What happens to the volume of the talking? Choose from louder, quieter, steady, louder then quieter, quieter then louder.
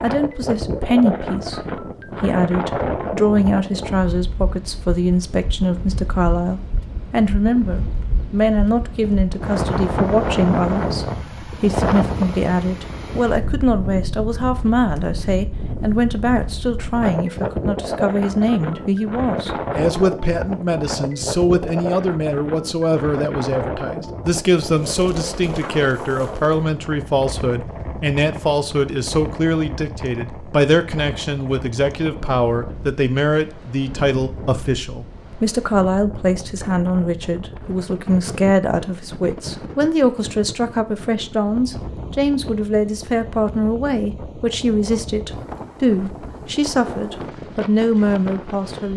steady.